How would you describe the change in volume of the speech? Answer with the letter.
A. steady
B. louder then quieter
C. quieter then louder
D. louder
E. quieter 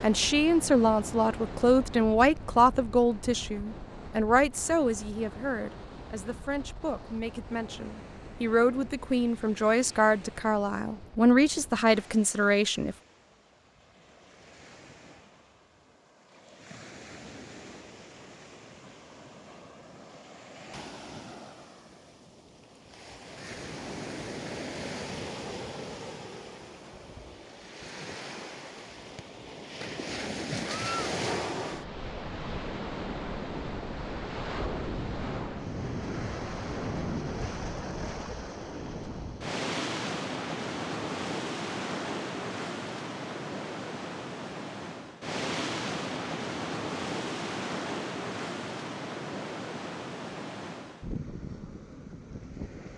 C.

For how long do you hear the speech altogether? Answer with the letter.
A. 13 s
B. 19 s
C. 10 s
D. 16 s
A.